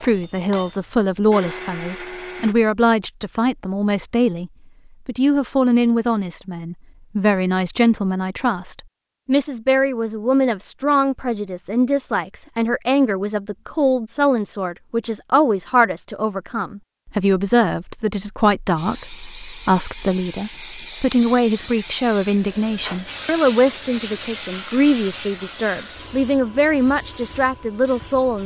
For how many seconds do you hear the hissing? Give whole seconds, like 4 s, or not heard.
10 s.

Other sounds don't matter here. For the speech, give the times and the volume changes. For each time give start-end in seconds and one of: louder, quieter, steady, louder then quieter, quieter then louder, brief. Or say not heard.
0.0-28.4 steady.